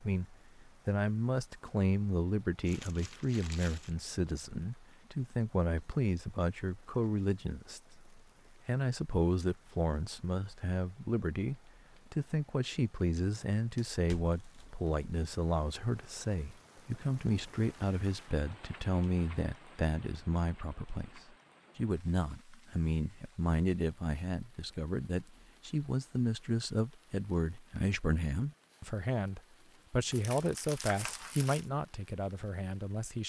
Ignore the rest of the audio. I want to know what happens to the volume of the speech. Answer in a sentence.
The volume of the speech stays about the same.